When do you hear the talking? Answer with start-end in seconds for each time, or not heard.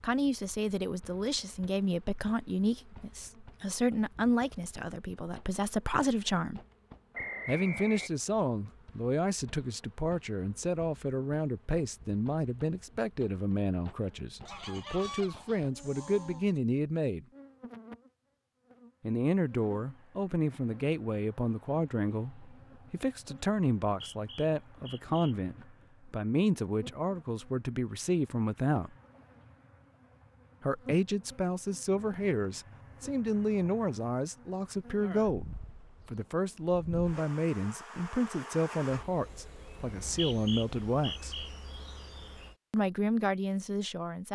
0.0-6.6, 7.5-17.2, 19.0-28.9, 30.6-41.5, 42.7-44.3.